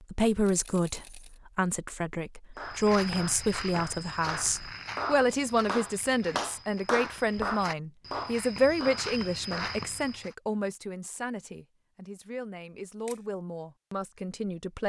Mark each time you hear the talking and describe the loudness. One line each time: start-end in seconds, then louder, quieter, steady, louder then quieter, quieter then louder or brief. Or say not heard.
0.1-14.8 quieter.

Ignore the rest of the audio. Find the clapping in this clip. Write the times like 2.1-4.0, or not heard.
2.5-9.8.